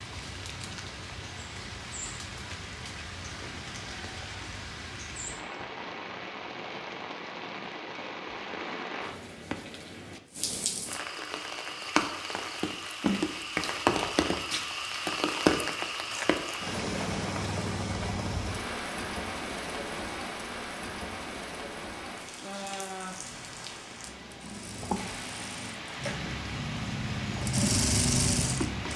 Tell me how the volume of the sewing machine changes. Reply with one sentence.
The loudness of the sewing machine goes up.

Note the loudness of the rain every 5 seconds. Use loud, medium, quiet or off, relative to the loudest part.
medium, medium, loud, loud, medium, medium.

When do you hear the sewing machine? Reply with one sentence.
The sewing machine can be heard from 23.1 to 28.9 s.